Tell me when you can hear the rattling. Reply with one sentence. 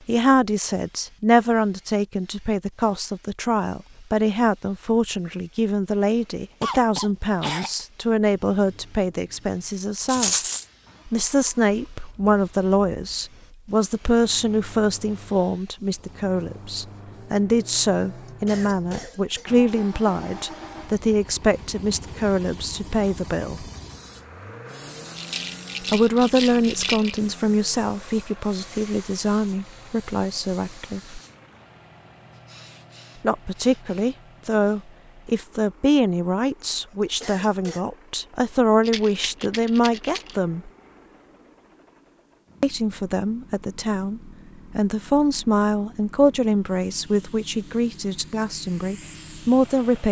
You can hear the rattling from 10.1 to 10.7 s, from 25.1 to 27.2 s and from 38.9 to 40.4 s.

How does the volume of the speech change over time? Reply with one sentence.
The loudness of the speech stays about the same.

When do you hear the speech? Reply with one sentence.
The speech can be heard from 0.1 to 10.3 s, from 11.1 to 23.6 s, from 25.8 to 31.2 s, from 33.2 to 40.7 s and from 42.6 to 50.0 s.